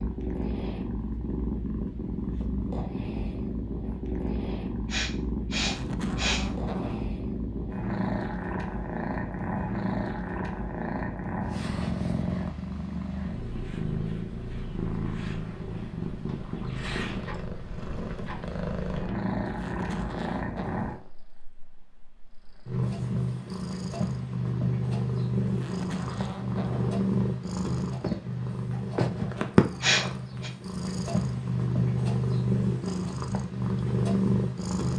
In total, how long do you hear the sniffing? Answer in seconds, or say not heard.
2 s.